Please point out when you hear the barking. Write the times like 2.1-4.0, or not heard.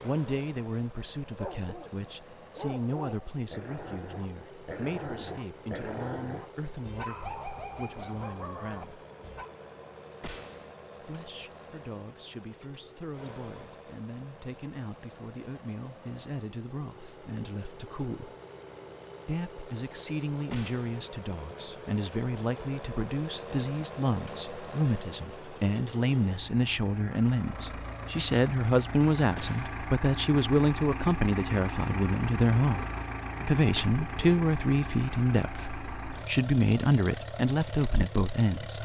1.4-9.5.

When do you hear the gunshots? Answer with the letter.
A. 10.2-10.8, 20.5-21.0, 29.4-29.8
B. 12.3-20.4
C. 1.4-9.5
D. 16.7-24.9
A.